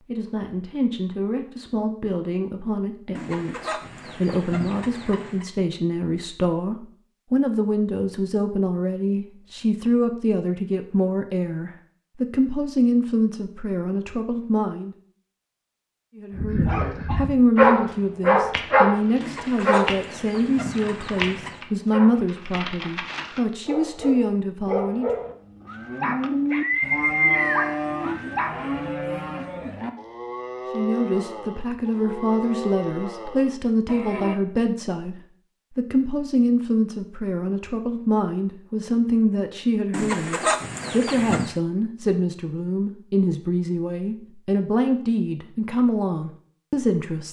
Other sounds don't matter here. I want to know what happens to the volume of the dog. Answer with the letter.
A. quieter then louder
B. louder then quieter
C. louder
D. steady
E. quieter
A.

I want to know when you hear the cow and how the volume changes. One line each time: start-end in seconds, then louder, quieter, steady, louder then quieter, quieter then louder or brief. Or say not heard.
25.4-34.4 quieter.